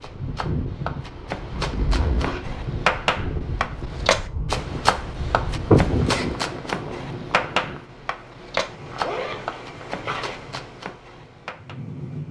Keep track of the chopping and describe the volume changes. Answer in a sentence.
The loudness of the chopping goes up, then down.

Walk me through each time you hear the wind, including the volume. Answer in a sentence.
You can hear the wind from 0.0 to 12.2 s, getting quieter.